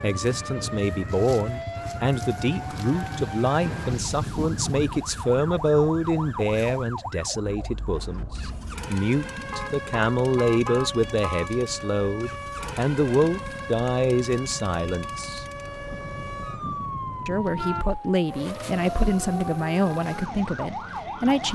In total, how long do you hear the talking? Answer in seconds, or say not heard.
20 s.